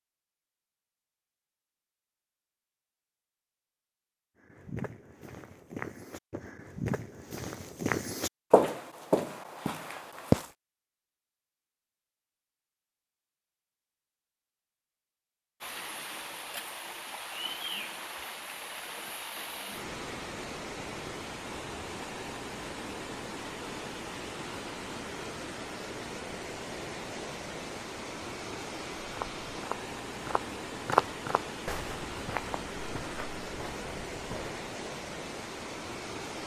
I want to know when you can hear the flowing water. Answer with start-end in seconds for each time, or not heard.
15.6-36.4.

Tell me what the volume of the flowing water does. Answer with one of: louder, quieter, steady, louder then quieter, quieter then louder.
steady.